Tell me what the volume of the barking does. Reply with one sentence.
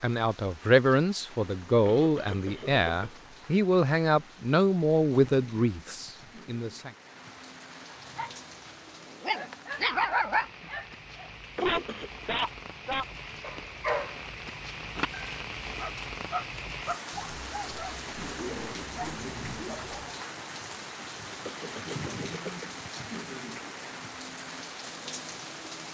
The volume of the barking goes down.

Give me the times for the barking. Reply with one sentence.
The barking can be heard from 7.9 to 20.1 s.